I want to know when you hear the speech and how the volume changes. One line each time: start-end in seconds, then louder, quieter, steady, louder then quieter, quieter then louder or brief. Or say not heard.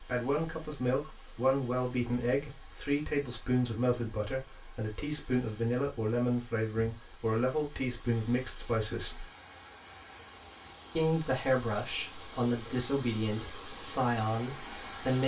0.0-9.2 steady
10.9-15.2 steady.